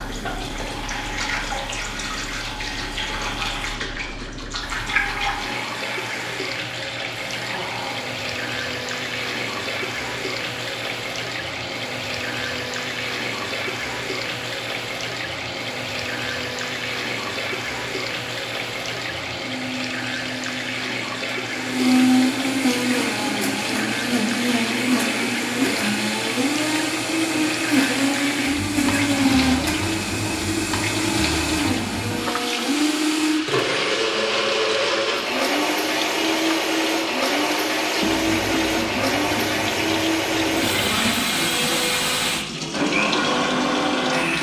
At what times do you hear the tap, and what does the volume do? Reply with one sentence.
The tap can be heard from 0.0 to 44.3 s, at a steady volume.